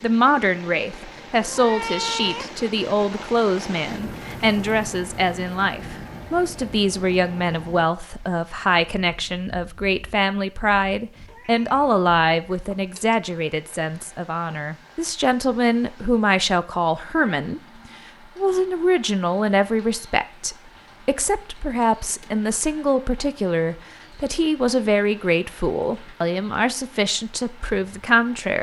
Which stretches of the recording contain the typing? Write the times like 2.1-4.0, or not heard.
not heard.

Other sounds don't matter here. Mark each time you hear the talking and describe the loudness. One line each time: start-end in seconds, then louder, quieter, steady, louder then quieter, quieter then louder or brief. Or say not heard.
0.0-28.5 steady.